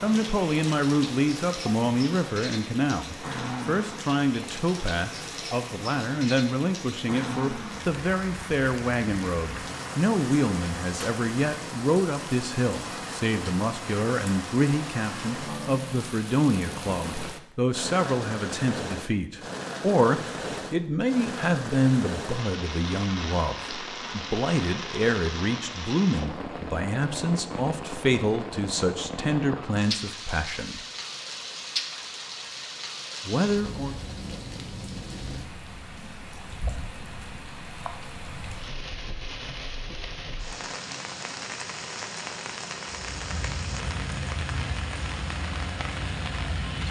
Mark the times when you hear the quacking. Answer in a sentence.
You can hear the quacking from 43.0 to 46.8 s.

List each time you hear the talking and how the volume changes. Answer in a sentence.
The talking can be heard from 0.0 to 30.8 s, at a steady volume; and briefly from 33.2 to 34.0 s.